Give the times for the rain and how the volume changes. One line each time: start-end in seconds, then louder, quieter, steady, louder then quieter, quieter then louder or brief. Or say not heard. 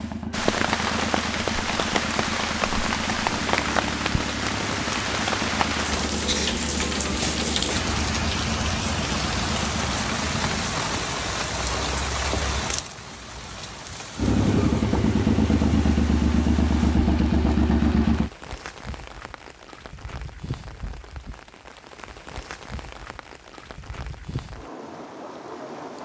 0.0-26.0 quieter.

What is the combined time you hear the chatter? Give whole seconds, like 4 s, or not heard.
not heard.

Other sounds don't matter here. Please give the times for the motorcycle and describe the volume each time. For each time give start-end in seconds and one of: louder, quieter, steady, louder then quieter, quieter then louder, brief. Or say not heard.
0.0-10.8 steady
14.2-18.3 steady.